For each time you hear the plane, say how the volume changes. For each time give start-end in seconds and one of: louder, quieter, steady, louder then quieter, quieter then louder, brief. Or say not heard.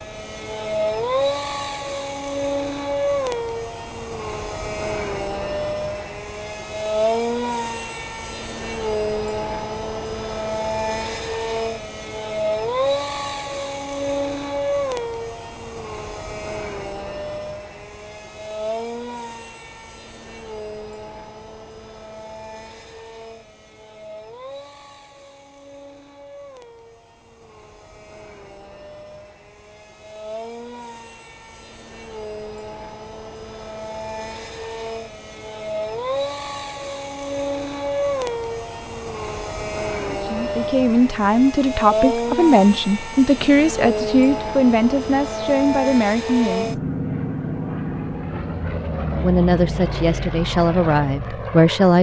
0.0-51.9 quieter then louder.